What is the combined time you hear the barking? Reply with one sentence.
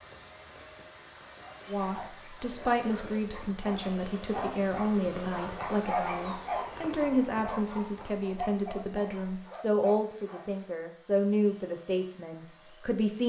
The barking can be heard for 9 seconds in total.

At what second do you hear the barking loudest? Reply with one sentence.
The volume of the barking peaks at 6 seconds.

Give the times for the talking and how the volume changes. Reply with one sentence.
You can hear the talking from 1.6 to 13.2 s, at a steady volume.